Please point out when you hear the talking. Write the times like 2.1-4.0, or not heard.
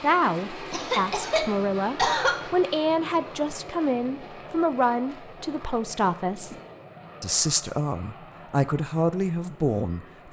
0.0-6.5, 7.2-10.2.